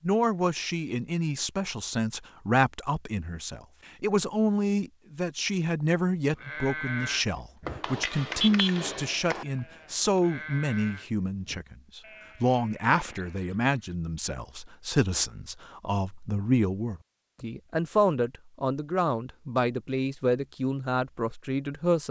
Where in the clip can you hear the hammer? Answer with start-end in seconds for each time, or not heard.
7.7-9.4.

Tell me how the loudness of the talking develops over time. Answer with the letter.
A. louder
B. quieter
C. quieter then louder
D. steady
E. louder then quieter
D.